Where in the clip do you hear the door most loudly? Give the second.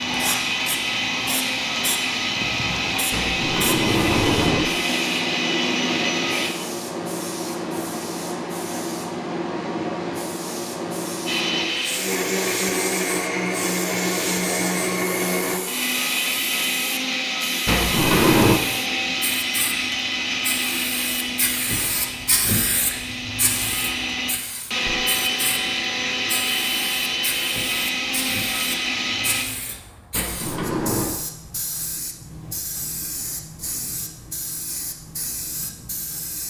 18 s.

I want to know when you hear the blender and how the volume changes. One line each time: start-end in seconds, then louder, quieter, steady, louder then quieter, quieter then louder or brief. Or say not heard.
0.0-6.5 steady
11.2-29.4 steady.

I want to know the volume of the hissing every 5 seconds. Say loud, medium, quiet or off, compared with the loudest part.
loud, loud, loud, medium, loud, medium, medium, medium.